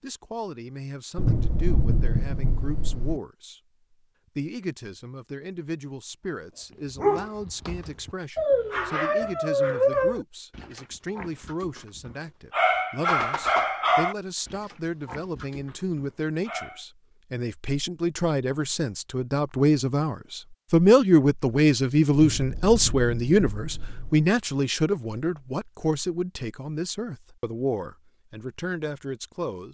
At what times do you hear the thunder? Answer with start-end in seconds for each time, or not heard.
1.1-3.2, 22.1-24.1.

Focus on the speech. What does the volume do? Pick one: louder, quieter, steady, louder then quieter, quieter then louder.
louder then quieter.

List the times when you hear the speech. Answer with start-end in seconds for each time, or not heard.
0.0-3.6, 4.3-29.6.